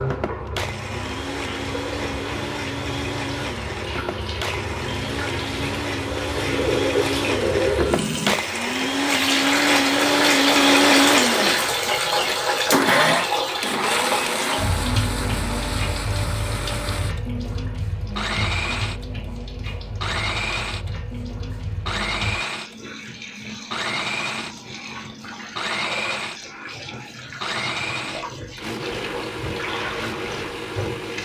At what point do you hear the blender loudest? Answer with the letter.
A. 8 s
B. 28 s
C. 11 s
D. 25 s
C.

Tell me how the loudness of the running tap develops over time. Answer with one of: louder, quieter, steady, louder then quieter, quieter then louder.
louder then quieter.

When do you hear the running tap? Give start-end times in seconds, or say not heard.
0.0-31.1.